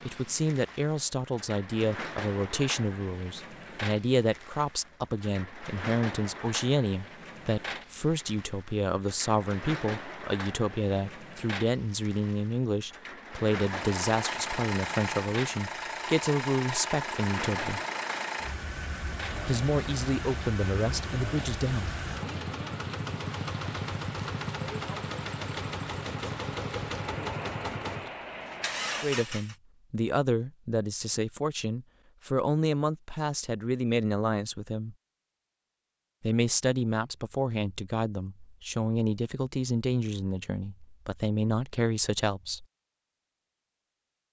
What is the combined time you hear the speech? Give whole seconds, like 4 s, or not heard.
33 s.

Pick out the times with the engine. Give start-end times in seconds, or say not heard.
13.4-29.6.